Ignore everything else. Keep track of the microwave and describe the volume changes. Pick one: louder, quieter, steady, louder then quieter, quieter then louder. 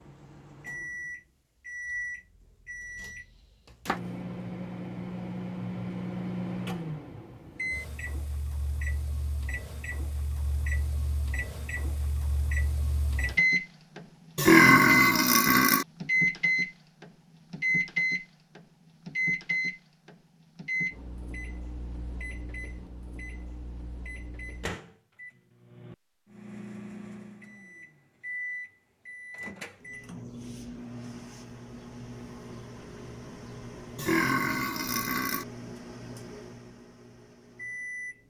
louder then quieter.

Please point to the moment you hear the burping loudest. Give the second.
15 s.